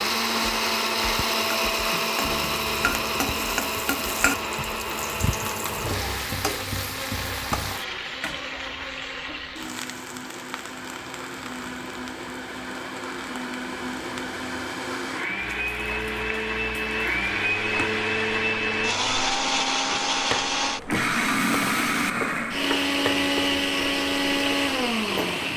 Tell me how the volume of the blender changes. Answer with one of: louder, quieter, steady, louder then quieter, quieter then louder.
quieter then louder.